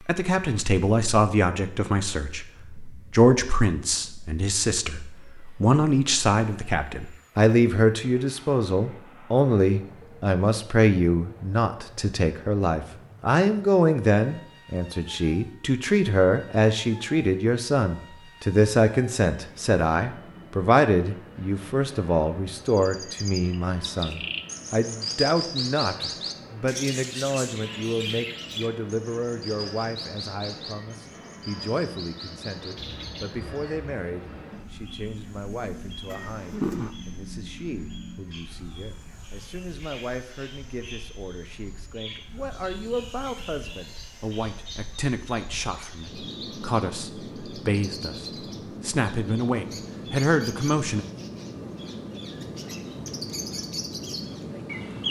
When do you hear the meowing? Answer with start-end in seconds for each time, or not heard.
36.1-37.0.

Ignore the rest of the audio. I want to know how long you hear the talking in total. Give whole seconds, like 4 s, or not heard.
51 s.